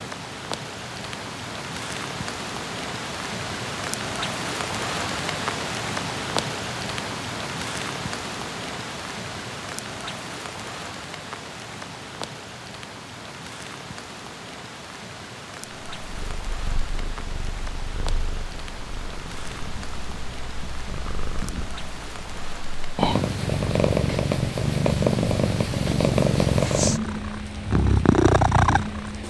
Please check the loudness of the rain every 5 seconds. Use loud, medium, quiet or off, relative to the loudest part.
loud, loud, medium, medium, medium, medium.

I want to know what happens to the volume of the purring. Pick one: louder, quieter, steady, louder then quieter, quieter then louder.
louder.